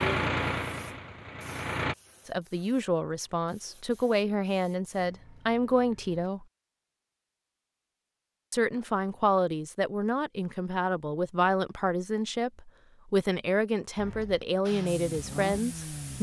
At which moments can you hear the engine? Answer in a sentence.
You can hear the engine from 0.0 to 1.9 s and from 14.7 to 16.1 s.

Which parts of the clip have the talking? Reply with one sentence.
You can hear the talking from 2.2 to 6.5 s and from 8.5 to 16.1 s.